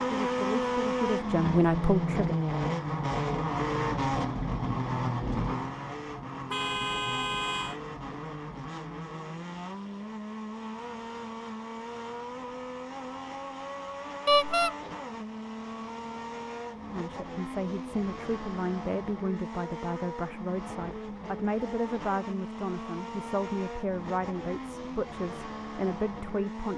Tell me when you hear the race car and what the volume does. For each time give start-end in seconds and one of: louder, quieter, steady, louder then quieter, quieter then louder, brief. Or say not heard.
0.0-26.7 quieter.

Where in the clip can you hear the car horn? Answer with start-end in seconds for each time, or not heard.
6.5-7.8, 14.2-14.8.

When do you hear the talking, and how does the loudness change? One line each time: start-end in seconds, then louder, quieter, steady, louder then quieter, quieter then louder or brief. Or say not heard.
0.0-2.4 brief
16.9-26.7 steady.